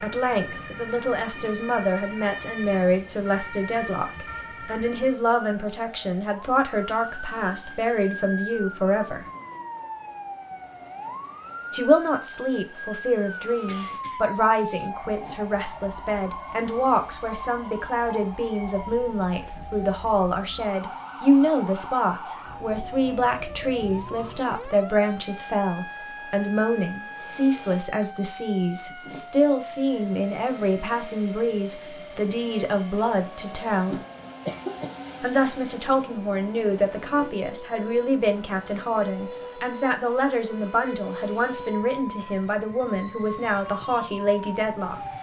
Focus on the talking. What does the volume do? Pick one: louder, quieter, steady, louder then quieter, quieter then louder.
steady.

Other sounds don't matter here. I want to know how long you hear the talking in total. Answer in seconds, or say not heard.
41 s.